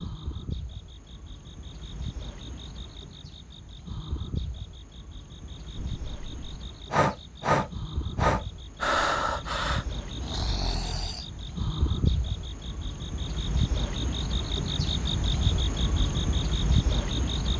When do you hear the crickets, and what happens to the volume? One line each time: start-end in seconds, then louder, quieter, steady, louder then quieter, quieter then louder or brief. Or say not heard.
0.0-17.5 louder.